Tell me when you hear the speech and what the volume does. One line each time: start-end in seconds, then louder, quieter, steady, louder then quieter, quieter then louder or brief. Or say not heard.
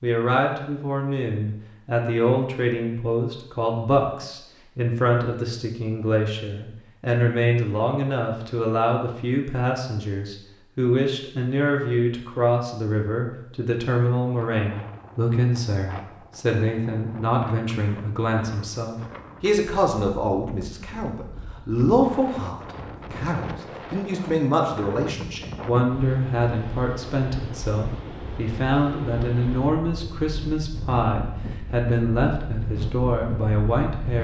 0.0-34.1 steady.